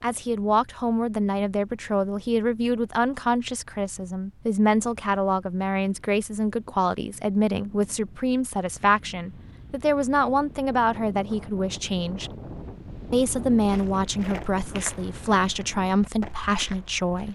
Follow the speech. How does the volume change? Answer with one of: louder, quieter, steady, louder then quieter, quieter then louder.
steady.